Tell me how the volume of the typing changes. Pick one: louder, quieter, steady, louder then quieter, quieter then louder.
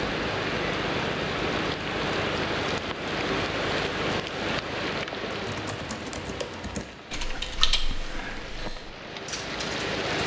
louder then quieter.